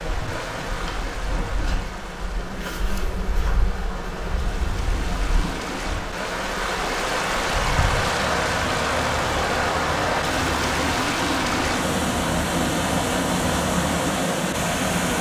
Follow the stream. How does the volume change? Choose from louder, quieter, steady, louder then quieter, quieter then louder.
louder.